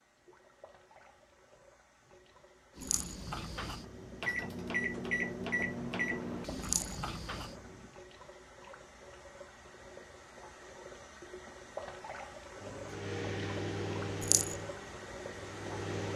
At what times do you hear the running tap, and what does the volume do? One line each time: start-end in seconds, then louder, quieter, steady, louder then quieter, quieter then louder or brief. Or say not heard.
0.0-16.1 louder.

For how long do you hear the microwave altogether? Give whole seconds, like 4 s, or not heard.
9 s.